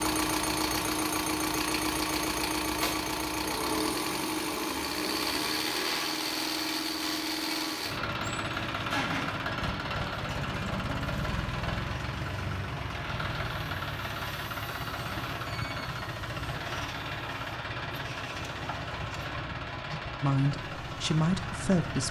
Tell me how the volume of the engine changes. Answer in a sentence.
The volume of the engine goes down.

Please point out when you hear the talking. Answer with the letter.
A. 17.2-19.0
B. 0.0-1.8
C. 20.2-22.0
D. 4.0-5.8
C.